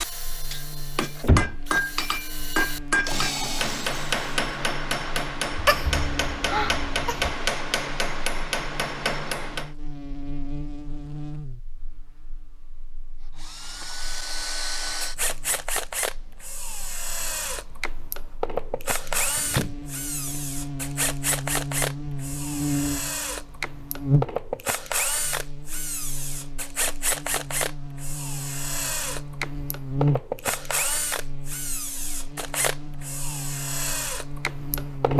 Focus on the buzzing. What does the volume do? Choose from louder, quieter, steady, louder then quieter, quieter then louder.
louder.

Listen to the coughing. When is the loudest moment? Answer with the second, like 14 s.
6 s.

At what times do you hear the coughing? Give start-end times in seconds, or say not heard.
5.5-7.3.